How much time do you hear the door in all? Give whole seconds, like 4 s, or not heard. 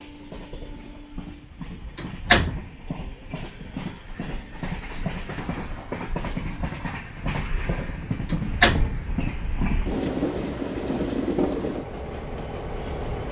2 s.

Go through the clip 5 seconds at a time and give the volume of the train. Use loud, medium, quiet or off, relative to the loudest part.
medium, loud, loud.